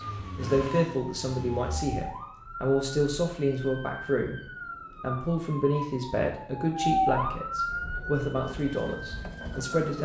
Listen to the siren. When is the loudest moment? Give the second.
7 s.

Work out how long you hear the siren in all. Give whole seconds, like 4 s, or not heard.
10 s.